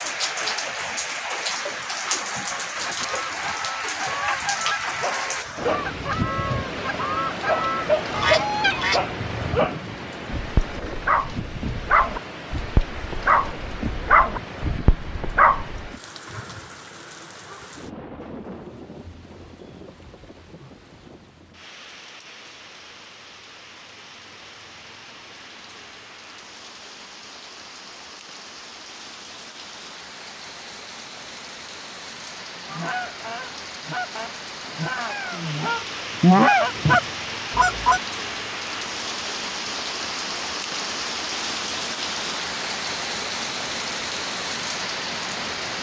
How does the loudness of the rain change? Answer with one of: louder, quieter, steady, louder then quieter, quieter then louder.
quieter then louder.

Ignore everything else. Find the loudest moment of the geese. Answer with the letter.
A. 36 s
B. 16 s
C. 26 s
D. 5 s
A.